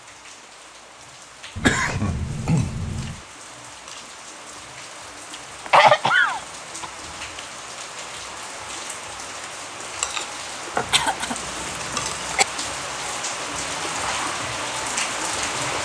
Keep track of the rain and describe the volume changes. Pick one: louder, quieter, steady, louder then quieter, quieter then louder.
louder.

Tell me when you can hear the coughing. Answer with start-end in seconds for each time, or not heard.
1.6-3.1, 5.7-6.9, 10.8-12.4.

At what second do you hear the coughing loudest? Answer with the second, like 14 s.
6 s.